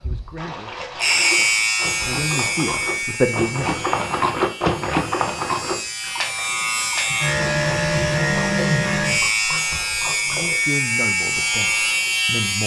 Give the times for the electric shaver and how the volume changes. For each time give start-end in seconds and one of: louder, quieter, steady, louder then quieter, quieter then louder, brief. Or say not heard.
0.0-12.6 quieter then louder.